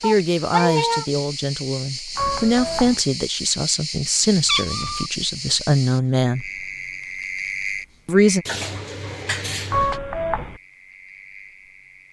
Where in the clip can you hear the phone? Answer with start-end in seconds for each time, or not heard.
2.1-3.0, 9.7-10.6.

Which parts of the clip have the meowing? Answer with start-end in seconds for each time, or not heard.
0.0-1.1, 4.5-5.1, 8.4-10.0.